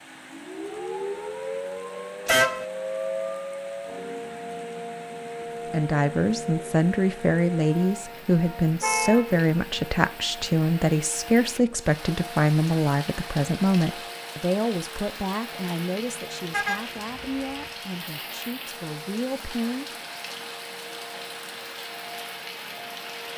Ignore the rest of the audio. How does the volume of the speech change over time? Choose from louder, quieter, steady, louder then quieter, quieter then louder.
quieter.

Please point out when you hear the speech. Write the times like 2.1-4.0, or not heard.
5.7-19.9.